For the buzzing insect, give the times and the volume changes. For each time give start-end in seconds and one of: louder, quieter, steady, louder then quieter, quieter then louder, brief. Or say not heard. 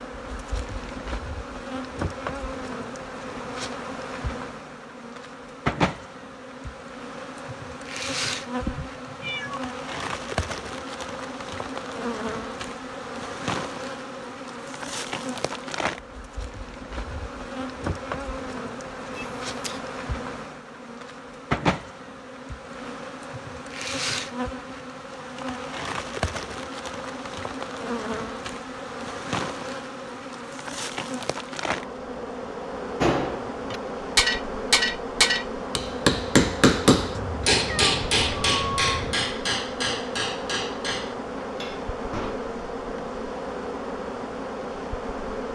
0.0-45.4 steady.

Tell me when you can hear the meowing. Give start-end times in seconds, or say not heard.
8.6-9.6, 19.1-19.8, 37.1-39.1.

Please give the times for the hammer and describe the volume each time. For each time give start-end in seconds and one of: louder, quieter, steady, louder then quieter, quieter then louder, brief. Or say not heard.
33.0-42.4 quieter.